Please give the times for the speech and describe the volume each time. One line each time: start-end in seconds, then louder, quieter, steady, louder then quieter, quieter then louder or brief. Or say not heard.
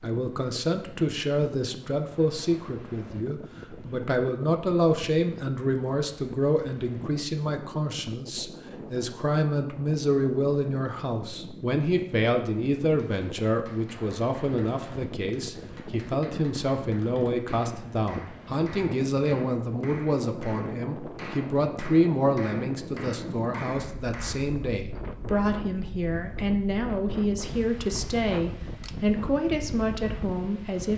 0.0-30.9 steady.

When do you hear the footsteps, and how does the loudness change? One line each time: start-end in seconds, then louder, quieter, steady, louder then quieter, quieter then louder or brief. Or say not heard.
not heard.